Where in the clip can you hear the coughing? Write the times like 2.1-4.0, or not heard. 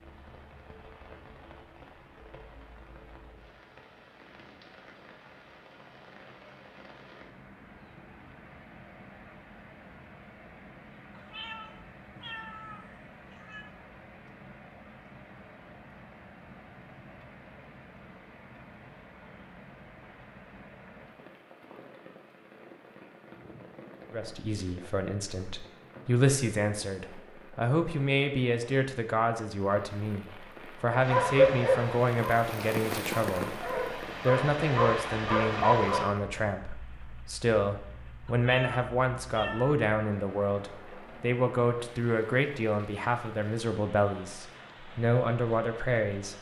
not heard.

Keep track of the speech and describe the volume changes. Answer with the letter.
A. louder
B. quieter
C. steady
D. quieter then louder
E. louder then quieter
C.